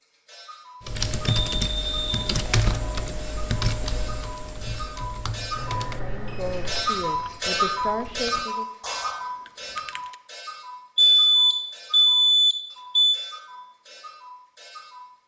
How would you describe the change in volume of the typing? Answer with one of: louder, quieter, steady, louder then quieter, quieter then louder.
quieter.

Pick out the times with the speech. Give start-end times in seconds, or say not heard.
6.0-8.7.